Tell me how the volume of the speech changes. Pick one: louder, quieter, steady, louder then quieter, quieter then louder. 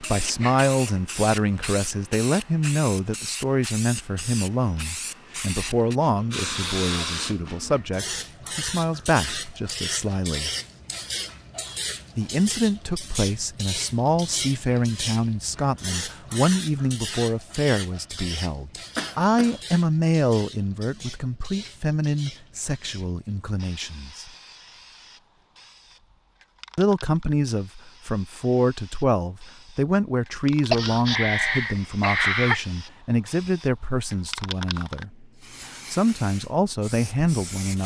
steady.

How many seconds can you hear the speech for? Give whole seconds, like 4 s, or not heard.
34 s.